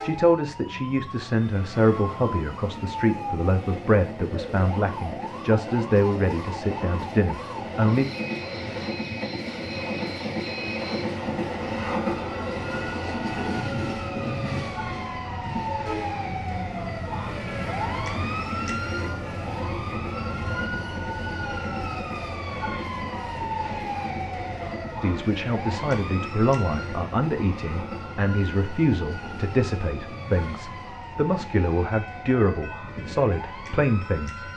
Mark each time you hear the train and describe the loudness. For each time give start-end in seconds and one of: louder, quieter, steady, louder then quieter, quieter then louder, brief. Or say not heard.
0.0-34.5 louder then quieter.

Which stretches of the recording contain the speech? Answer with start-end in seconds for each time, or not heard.
0.0-8.1, 25.0-34.5.